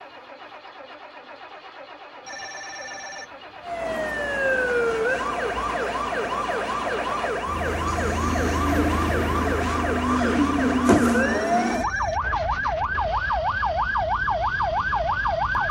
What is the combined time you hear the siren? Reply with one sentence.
You can hear the siren for 12 seconds altogether.